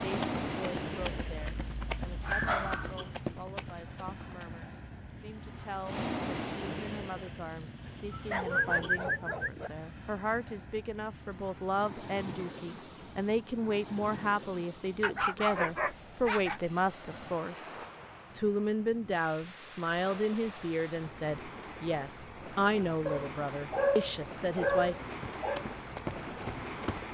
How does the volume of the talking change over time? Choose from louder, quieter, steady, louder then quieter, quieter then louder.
louder.